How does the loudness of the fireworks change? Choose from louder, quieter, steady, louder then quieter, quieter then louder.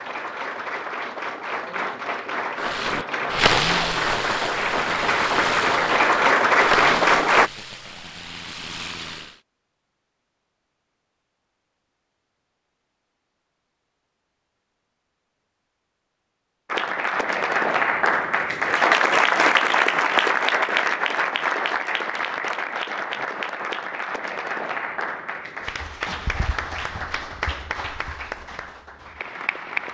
quieter.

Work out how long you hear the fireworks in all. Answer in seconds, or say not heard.
7 s.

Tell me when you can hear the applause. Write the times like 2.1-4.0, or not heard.
0.0-7.5, 16.6-29.8.